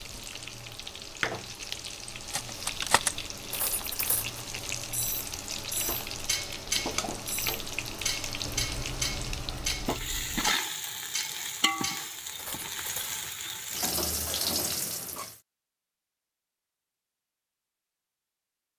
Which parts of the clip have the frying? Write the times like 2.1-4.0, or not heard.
0.0-15.3.